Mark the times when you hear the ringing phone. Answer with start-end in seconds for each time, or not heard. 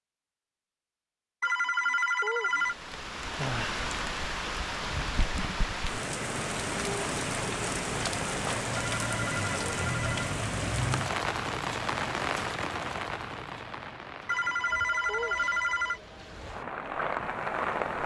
1.4-2.8, 8.8-10.2, 14.2-16.0.